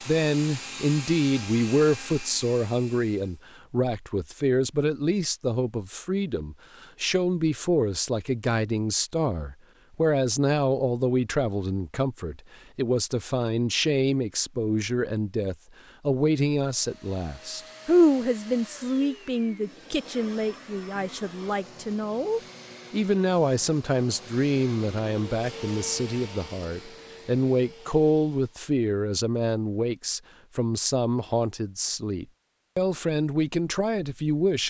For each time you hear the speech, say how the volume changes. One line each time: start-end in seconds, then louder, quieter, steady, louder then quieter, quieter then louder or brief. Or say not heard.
0.1-34.6 steady.